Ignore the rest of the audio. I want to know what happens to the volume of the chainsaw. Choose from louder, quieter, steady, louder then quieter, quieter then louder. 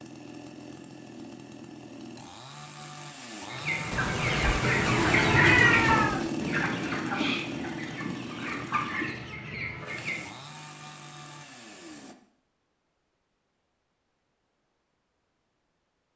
louder then quieter.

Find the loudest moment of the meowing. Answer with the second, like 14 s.
6 s.